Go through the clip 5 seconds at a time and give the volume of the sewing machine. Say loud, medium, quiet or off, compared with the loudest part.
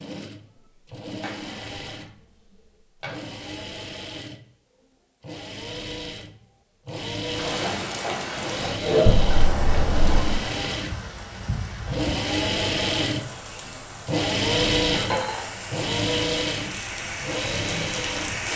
quiet, medium, loud, loud.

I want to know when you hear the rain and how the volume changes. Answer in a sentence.
You can hear the rain from 7.2 to 18.5 s, getting quieter then louder.